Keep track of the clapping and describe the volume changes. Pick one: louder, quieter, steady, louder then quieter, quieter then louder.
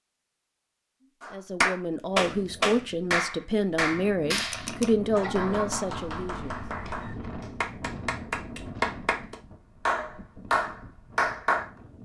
quieter then louder.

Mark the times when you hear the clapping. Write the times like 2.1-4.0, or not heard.
1.2-11.7.